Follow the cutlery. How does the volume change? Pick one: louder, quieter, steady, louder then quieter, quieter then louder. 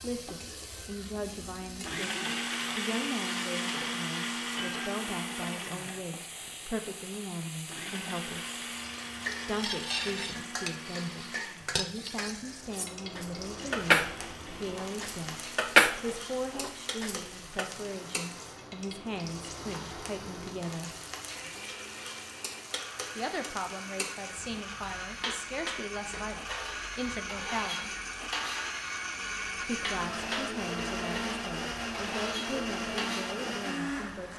louder then quieter.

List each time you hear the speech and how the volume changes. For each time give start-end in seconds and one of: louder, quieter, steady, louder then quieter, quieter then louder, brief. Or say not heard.
0.0-8.6 steady
9.4-15.3 steady
16.0-20.9 steady
23.1-27.9 steady
29.6-34.3 steady.